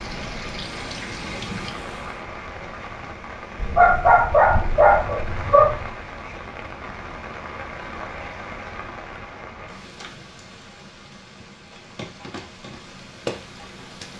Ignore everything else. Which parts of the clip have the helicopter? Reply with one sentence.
The helicopter can be heard from 0.0 to 2.2 s.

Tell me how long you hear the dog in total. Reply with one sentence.
You can hear the dog for 2 seconds altogether.